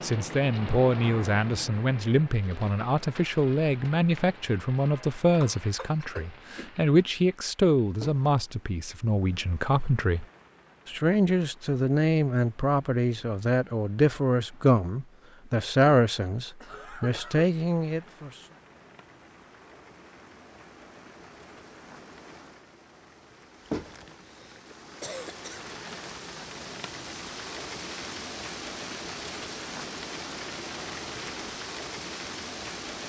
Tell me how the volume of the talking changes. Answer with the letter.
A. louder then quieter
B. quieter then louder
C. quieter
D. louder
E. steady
E.